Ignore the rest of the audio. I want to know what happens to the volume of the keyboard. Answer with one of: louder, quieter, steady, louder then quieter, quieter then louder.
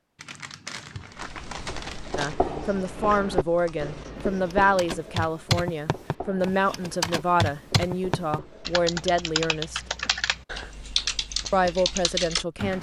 louder.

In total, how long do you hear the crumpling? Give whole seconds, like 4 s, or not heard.
2 s.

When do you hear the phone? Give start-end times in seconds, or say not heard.
not heard.